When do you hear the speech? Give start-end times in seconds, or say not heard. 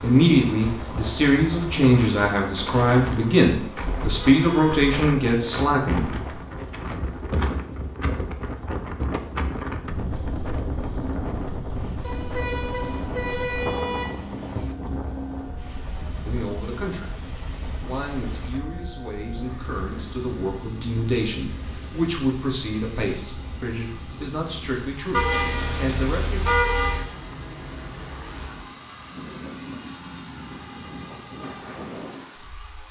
0.0-6.1, 16.2-26.5.